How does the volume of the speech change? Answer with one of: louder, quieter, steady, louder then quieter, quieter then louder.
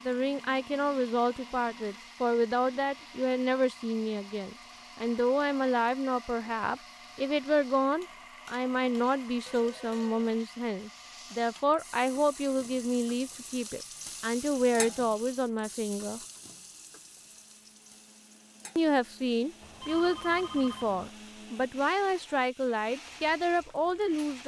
steady.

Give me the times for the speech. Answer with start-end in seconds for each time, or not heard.
0.0-16.2, 18.8-24.4.